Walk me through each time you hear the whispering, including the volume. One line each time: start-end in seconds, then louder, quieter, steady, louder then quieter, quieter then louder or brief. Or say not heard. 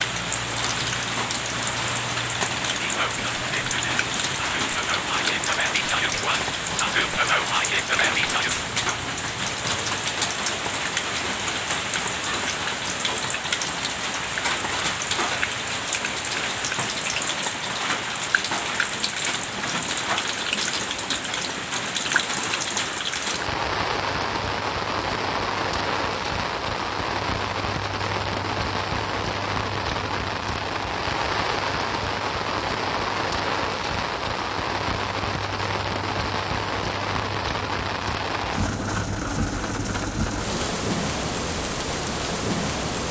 2.8-8.7 louder.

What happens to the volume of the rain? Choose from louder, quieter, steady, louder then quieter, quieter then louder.
steady.